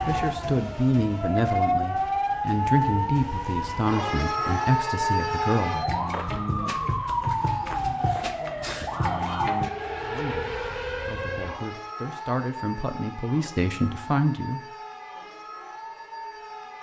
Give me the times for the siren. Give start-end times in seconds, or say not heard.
0.0-16.7.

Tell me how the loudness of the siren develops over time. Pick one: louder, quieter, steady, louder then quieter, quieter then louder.
quieter.